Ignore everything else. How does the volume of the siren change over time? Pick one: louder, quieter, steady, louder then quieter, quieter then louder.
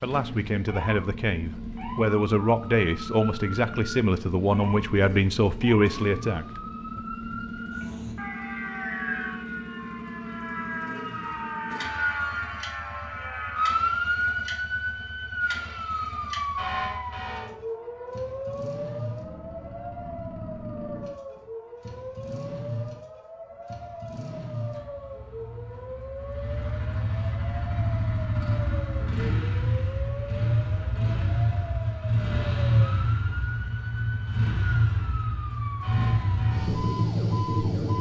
louder then quieter.